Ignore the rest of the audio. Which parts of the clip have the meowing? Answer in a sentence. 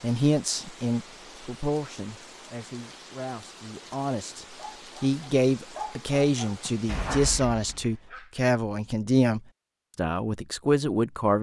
You can't hear the meowing here.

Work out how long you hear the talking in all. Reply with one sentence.
The talking can be heard for 11 seconds in total.